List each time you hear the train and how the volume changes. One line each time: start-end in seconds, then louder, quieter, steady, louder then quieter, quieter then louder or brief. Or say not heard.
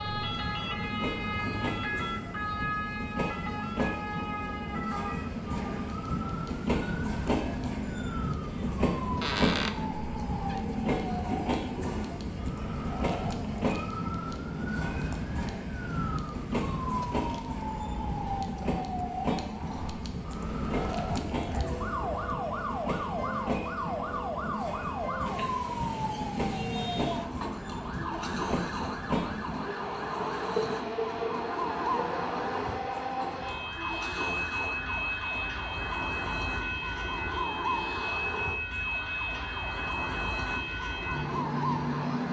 0.0-42.2 steady.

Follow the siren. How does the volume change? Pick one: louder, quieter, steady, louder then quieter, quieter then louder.
steady.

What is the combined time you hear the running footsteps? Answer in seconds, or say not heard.
not heard.